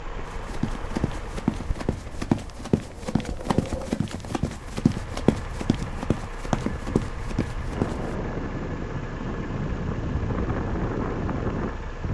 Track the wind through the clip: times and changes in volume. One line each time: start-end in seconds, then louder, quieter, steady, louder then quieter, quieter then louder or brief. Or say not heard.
0.0-12.0 louder.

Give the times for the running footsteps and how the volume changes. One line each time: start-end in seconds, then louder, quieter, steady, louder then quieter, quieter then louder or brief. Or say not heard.
0.2-8.2 steady.